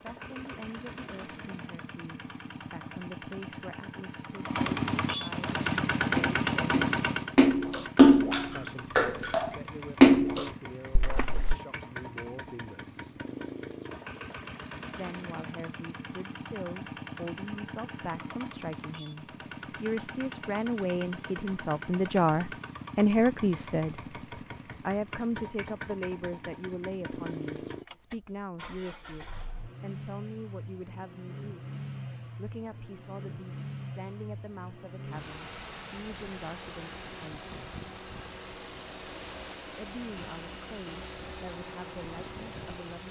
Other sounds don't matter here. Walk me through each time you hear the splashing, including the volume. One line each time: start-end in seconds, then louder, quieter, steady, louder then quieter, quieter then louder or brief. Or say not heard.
5.5-11.6 louder then quieter.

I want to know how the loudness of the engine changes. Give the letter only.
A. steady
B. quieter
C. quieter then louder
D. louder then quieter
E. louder
B.